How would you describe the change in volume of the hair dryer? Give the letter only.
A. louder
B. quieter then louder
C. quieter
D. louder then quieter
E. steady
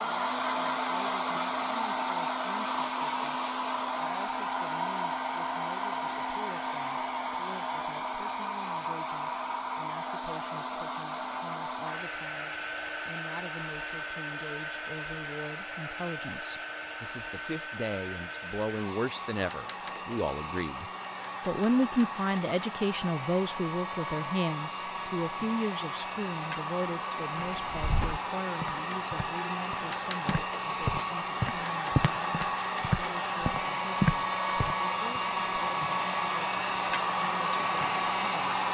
B.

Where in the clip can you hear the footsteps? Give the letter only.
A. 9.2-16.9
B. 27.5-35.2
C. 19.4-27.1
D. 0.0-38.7
B.